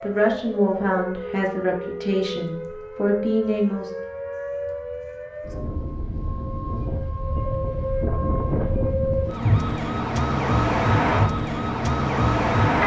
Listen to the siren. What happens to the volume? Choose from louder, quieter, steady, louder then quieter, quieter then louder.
louder.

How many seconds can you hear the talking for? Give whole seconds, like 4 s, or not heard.
4 s.